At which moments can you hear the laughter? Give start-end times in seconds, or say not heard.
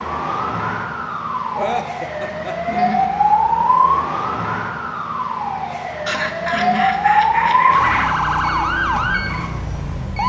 1.6-3.1, 6.0-8.2.